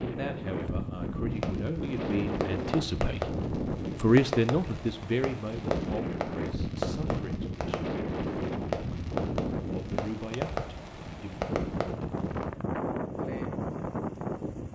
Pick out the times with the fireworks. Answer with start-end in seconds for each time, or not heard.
1.3-12.4.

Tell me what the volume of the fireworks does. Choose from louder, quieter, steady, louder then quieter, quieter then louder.
steady.